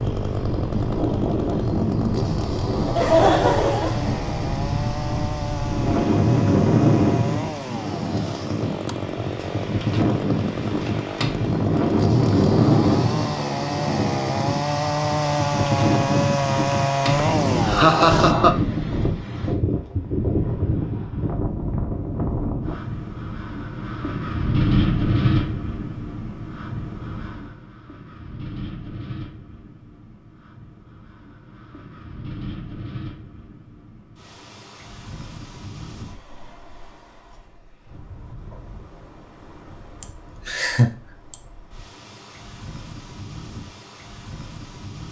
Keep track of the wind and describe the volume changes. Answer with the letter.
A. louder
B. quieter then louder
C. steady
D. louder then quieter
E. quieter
E.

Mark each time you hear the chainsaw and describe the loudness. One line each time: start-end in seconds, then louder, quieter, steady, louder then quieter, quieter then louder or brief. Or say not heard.
0.0-18.4 louder.